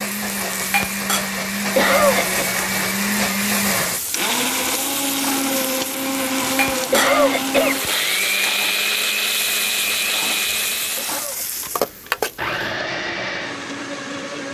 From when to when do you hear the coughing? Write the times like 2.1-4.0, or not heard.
1.7-2.5, 6.8-7.8, 10.9-11.4.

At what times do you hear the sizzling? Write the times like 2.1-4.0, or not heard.
0.0-12.8.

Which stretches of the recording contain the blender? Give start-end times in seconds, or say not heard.
0.0-14.4.